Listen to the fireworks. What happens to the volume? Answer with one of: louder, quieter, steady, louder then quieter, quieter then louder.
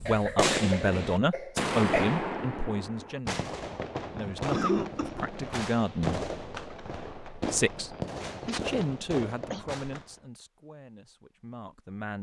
quieter.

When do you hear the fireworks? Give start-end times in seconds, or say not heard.
0.0-10.2.